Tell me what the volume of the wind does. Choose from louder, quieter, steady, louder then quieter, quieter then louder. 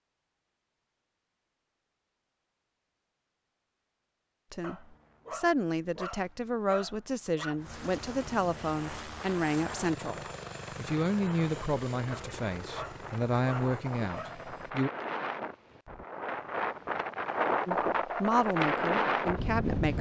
louder.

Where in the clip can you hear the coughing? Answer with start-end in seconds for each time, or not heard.
not heard.